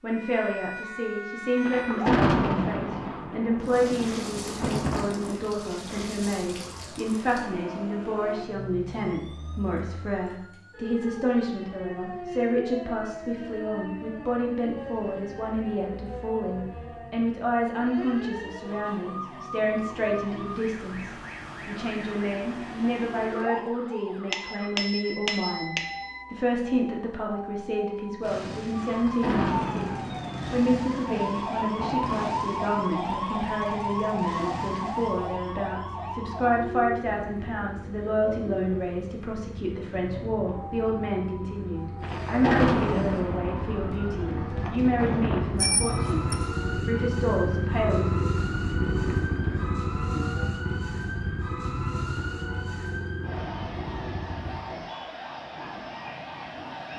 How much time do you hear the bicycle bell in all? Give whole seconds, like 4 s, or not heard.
3 s.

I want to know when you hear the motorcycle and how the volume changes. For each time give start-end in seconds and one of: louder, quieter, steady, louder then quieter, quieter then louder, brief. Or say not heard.
28.2-54.6 louder.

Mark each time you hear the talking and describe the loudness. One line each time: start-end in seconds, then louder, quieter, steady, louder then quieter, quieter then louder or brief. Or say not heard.
0.0-48.2 steady.